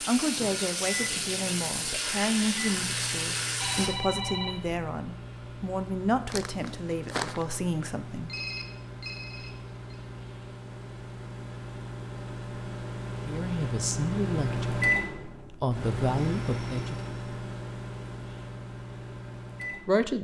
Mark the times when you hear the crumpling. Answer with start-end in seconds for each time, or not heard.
6.2-7.5.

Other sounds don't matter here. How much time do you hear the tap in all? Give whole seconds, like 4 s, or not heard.
4 s.